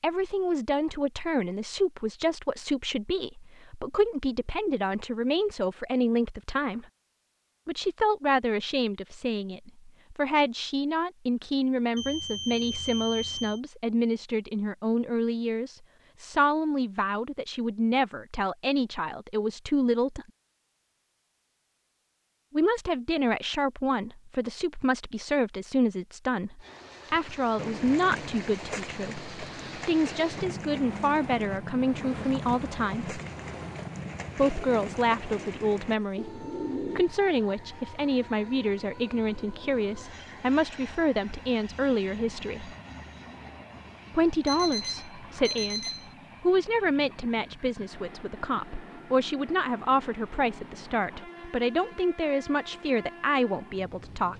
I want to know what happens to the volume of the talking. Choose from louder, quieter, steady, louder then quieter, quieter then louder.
steady.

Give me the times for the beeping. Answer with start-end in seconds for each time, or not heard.
11.9-13.6, 44.5-46.1.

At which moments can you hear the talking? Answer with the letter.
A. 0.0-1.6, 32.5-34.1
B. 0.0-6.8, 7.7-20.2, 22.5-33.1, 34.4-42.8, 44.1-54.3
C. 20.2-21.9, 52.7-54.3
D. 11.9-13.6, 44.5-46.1
B.